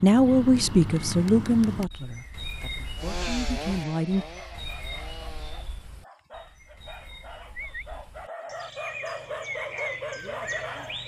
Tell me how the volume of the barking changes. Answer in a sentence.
The loudness of the barking goes up.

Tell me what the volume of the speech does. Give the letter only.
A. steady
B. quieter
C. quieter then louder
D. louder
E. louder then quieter
C.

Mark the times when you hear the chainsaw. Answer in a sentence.
The chainsaw can be heard from 3.0 to 5.8 s.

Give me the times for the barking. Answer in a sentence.
The barking can be heard from 4.2 to 11.0 s.